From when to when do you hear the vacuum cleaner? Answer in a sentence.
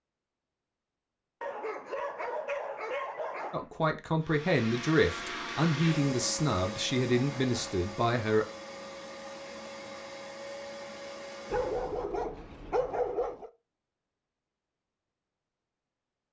The vacuum cleaner can be heard from 4.2 to 12.1 s.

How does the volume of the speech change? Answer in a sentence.
The volume of the speech stays about the same.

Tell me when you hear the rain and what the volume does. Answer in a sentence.
You can't hear the rain here.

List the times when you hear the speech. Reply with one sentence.
You can hear the speech from 3.5 to 8.4 s.